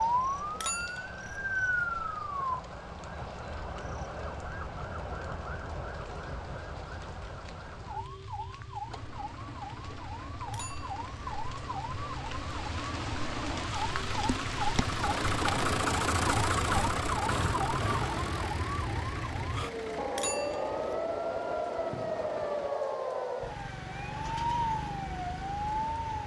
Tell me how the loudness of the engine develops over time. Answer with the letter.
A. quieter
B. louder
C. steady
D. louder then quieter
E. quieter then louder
D.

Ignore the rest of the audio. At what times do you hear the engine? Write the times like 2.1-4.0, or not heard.
8.8-22.8.